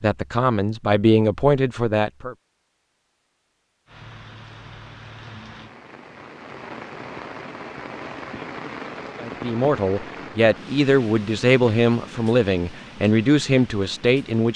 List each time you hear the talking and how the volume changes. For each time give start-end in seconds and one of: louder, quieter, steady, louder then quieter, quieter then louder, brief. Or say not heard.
0.0-2.4 brief
9.2-14.5 steady.